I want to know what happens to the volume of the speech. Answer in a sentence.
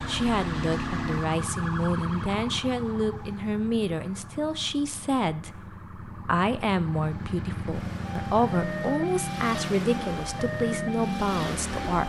The loudness of the speech stays about the same.